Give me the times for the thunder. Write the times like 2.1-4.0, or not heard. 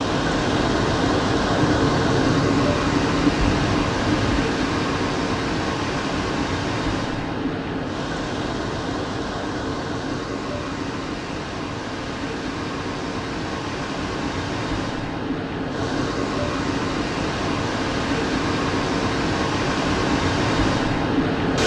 1.5-4.3.